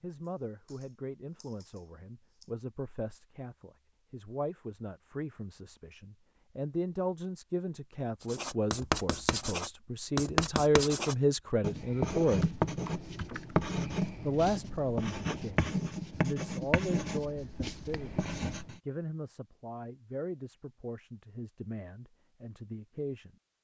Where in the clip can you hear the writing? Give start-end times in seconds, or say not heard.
8.2-18.8.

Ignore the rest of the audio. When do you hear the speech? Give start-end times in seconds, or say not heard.
0.0-12.6, 14.2-23.4.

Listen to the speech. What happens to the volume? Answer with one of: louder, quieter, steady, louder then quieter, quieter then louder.
louder then quieter.